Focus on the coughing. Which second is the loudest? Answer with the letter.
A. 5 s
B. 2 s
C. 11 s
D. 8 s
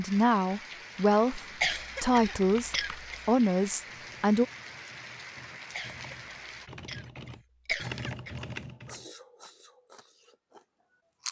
B.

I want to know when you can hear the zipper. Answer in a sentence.
You can't hear the zipper here.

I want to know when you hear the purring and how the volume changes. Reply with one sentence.
The purring can't be heard in this clip.